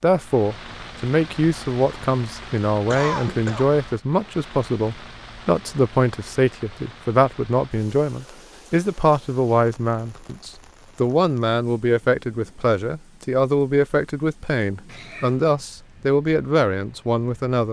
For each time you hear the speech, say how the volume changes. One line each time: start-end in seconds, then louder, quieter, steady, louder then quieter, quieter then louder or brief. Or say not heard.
0.0-17.6 steady.